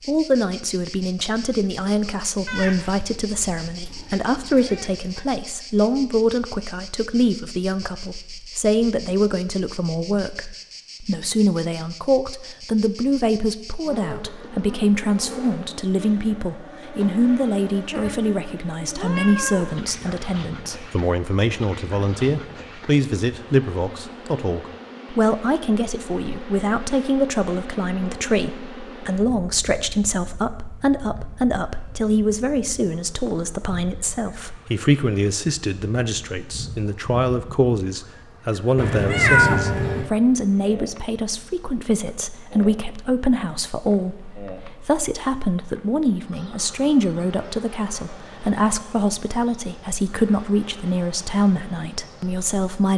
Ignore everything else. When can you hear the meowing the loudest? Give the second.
39 s.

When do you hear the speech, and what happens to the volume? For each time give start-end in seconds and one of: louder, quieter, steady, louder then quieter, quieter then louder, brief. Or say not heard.
0.1-52.9 steady.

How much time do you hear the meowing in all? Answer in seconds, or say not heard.
5 s.